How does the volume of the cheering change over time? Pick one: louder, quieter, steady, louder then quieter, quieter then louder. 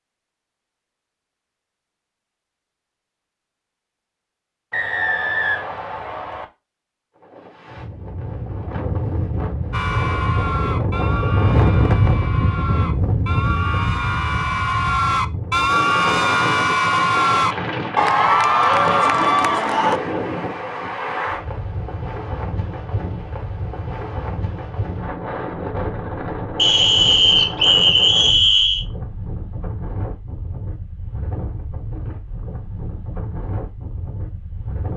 louder.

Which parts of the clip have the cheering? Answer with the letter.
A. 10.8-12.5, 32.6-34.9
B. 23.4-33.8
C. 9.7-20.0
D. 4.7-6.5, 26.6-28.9
C.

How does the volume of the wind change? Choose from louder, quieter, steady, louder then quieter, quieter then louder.
quieter.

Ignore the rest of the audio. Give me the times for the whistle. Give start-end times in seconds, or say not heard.
4.7-6.5, 26.6-28.9.